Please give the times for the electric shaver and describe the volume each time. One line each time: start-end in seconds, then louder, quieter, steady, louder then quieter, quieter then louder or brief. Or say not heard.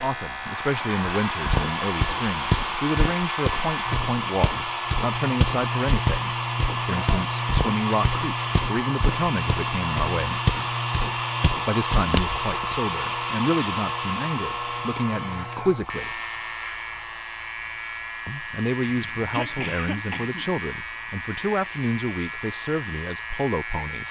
0.0-24.0 steady.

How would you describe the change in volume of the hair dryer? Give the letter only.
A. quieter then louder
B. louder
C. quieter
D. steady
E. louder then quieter
C.